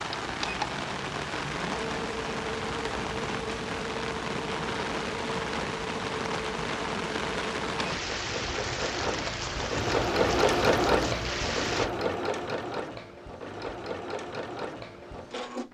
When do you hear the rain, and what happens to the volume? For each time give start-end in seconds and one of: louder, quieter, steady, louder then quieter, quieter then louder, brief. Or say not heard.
0.0-11.9 steady.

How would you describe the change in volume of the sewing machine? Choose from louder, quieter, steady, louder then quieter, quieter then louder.
louder then quieter.